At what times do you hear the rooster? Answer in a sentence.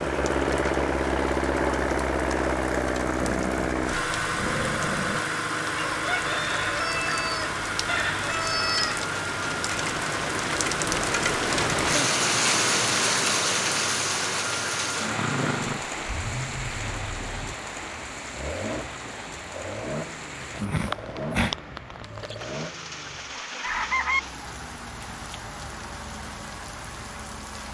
The rooster can be heard from 5.8 to 9.1 s and from 22.2 to 24.2 s.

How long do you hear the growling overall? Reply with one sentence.
You can hear the growling for 4 seconds altogether.